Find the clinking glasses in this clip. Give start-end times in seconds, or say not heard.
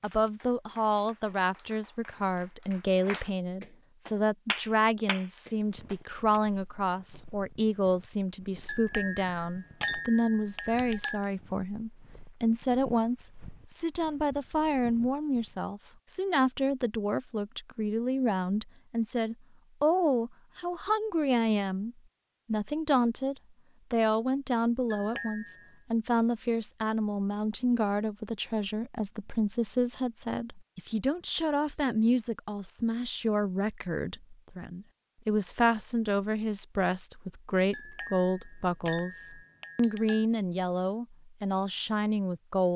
8.7-11.2, 24.9-25.7, 37.7-40.2.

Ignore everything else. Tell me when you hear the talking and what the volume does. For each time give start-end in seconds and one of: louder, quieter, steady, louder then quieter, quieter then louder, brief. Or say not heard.
0.0-42.7 steady.